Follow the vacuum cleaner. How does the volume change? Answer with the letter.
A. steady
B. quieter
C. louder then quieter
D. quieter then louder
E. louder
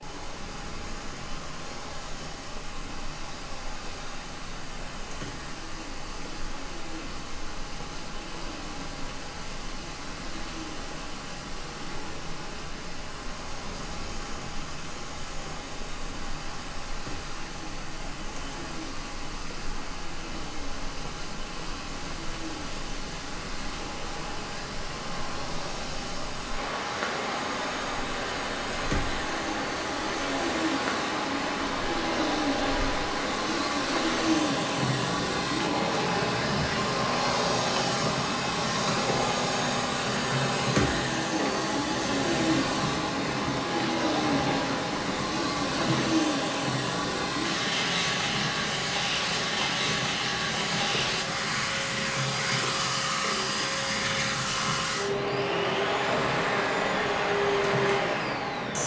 E.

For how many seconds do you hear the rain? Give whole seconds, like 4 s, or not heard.
59 s.